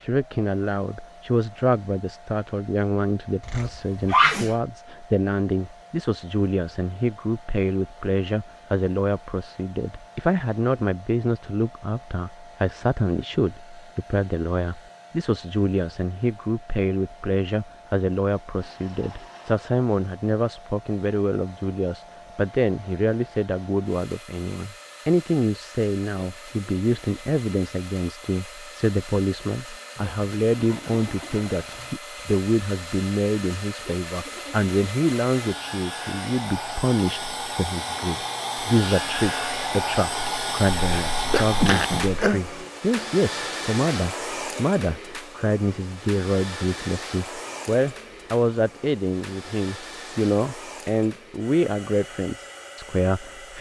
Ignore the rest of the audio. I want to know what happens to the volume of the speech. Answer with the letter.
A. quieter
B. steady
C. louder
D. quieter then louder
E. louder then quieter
B.